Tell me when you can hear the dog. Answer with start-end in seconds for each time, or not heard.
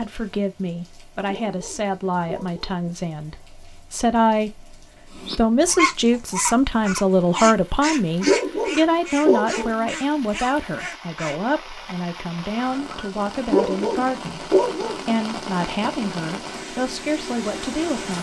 1.2-2.8, 8.2-9.9, 13.4-15.2.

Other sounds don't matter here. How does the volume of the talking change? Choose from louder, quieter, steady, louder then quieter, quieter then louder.
louder then quieter.